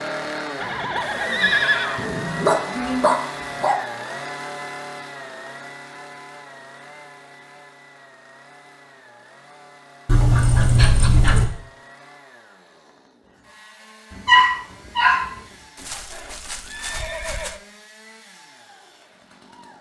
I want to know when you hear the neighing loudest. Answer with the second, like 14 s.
2 s.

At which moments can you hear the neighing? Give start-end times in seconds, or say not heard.
0.6-2.0, 15.8-17.6.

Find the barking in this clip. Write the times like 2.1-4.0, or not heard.
1.9-3.8, 10.1-11.4, 14.2-15.3.